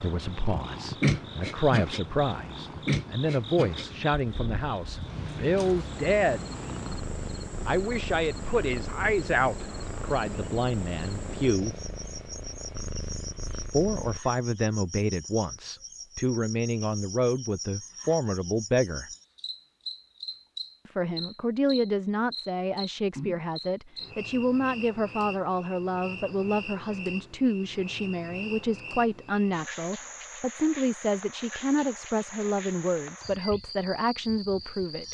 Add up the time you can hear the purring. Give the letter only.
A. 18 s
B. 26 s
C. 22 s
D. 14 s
D.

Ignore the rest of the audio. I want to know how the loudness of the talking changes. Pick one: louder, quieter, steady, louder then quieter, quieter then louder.
steady.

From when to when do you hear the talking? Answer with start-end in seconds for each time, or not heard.
0.0-6.5, 7.7-11.8, 13.7-19.1, 20.9-35.0.